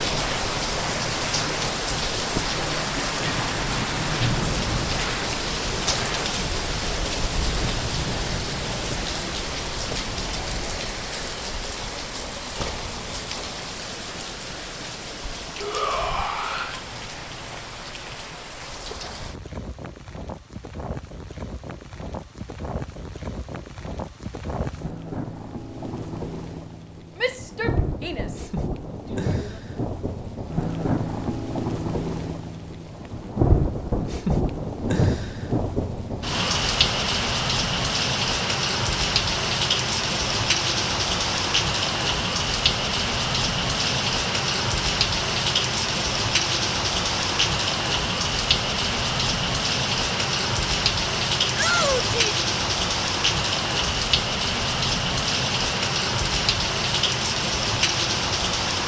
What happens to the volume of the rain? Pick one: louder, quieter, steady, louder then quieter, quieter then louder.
quieter then louder.